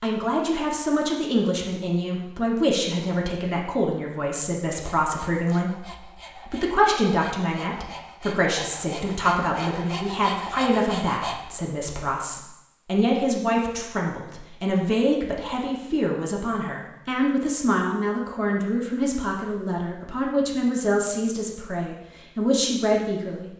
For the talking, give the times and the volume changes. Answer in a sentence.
You can hear the talking from 0.0 to 23.5 s, at a steady volume.